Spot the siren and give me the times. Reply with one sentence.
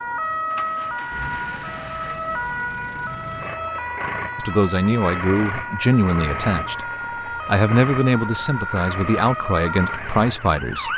You can hear the siren from 0.0 to 10.9 s.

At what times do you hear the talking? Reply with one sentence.
The talking can be heard from 4.3 to 10.9 s.